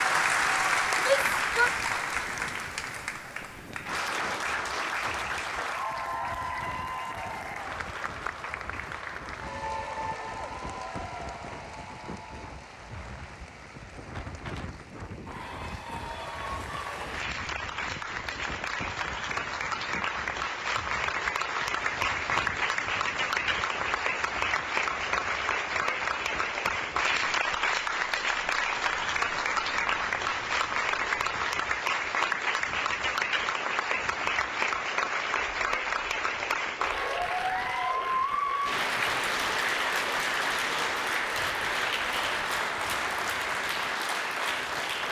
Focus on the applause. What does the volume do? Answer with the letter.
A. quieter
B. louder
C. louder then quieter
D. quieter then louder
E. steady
D.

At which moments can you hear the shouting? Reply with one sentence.
The shouting can be heard from 1.0 to 1.7 s.